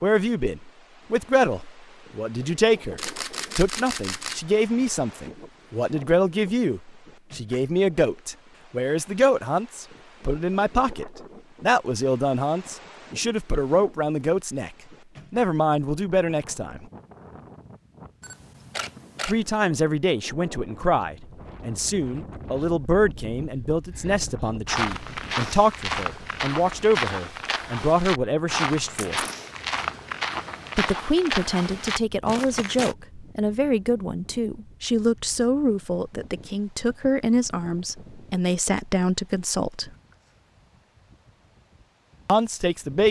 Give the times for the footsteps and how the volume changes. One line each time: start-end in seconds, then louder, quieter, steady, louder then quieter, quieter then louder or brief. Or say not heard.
24.6-33.0 steady.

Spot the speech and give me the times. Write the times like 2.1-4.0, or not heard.
0.0-14.7, 15.3-16.9, 19.2-29.2, 30.8-39.9, 42.2-43.0.